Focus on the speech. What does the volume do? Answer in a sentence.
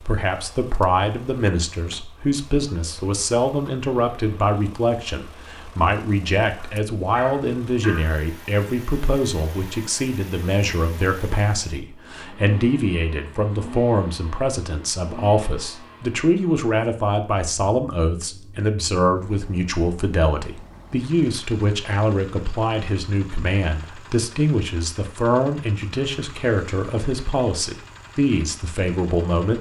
The loudness of the speech stays about the same.